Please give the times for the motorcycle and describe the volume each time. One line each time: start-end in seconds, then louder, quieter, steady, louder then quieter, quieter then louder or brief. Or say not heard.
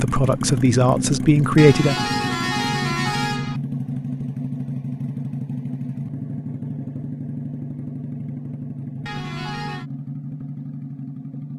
0.0-11.5 quieter.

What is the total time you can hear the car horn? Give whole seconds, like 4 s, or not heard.
3 s.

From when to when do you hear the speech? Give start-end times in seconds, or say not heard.
0.0-1.9.